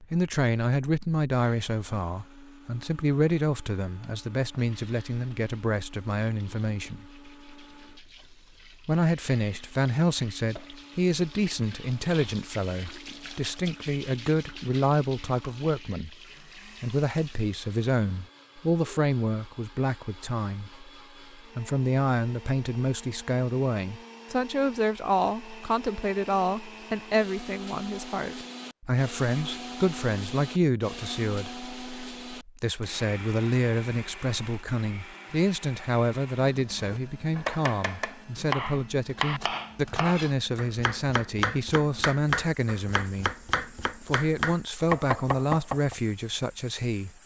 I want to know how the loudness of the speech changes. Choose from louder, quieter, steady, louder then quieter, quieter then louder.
steady.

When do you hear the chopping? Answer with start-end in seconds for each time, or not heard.
36.5-46.0.